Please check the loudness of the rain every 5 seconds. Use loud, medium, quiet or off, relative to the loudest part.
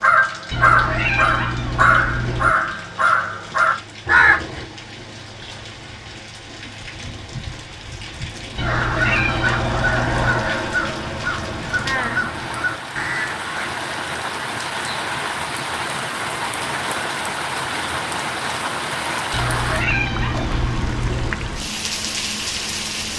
quiet, medium, loud, loud, loud.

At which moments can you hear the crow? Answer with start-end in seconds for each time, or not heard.
0.0-4.7, 8.6-13.7.